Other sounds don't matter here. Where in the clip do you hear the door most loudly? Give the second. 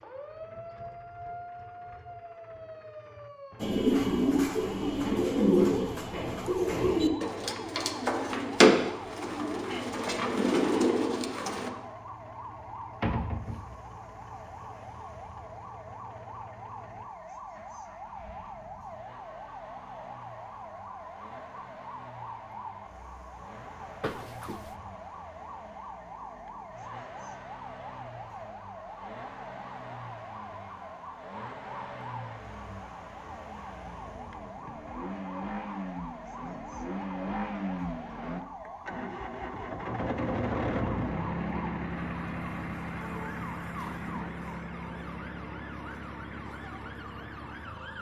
13 s.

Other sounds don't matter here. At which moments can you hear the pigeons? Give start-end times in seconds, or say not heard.
3.6-11.7.